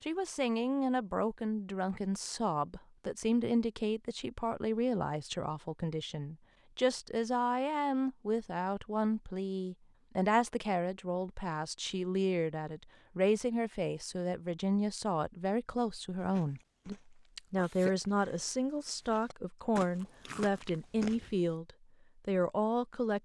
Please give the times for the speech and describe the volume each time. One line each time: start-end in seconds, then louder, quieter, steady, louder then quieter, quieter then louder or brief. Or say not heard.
0.0-23.2 steady.